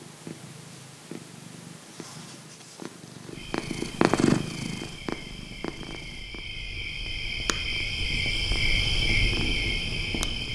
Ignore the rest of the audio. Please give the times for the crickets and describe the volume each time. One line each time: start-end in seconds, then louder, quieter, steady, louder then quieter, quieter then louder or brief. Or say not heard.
3.3-10.5 louder.